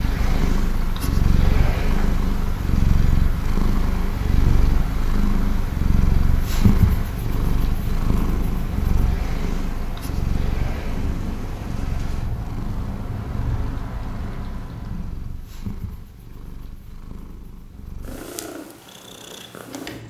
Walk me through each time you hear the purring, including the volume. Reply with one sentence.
You can hear the purring from 0.0 to 20.0 s, getting quieter.